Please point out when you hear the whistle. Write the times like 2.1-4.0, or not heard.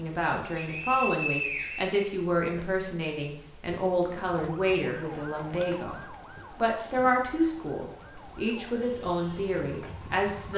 0.6-2.0.